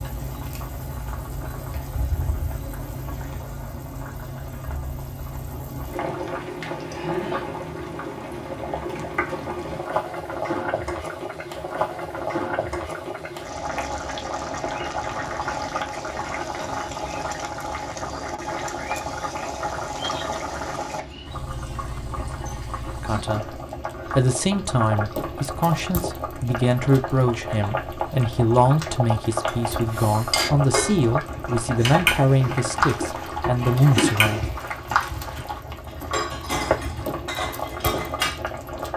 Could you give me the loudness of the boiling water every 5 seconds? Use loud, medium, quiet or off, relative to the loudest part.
medium, loud, loud, loud, loud, loud, loud, loud.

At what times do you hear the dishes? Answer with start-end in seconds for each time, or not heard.
29.4-38.4.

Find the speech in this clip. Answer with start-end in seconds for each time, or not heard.
22.9-34.5.